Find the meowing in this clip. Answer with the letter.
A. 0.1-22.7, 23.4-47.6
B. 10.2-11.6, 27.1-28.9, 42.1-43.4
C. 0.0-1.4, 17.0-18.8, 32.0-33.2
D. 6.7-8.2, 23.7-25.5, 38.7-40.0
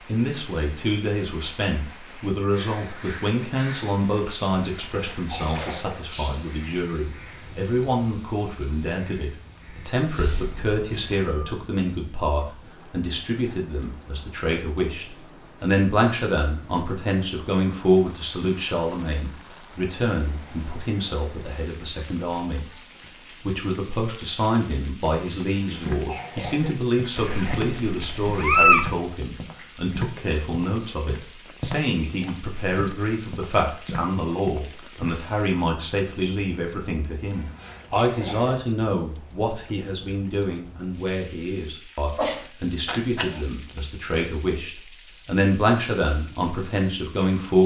B.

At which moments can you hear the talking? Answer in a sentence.
You can hear the talking from 0.1 to 22.7 s and from 23.4 to 47.6 s.